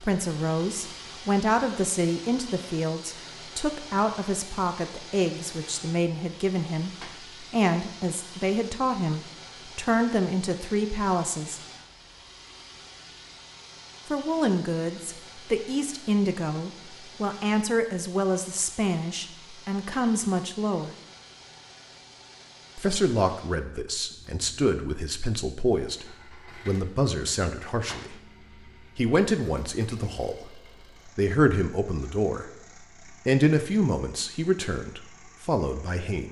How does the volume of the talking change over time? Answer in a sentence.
The volume of the talking stays about the same.